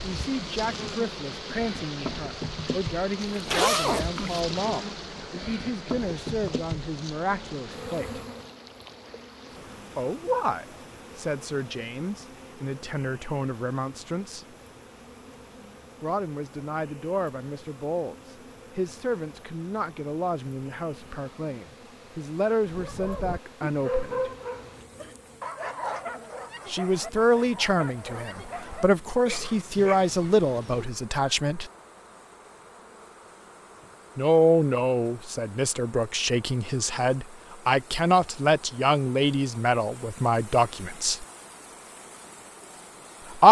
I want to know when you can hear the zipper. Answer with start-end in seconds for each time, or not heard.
3.2-4.4.